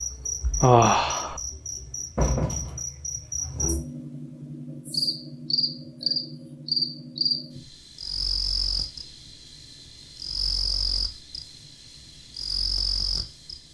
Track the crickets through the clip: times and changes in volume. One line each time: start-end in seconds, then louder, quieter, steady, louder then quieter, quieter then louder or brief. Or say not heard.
0.0-13.7 steady.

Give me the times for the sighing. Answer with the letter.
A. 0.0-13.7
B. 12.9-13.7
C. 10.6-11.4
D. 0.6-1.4
D.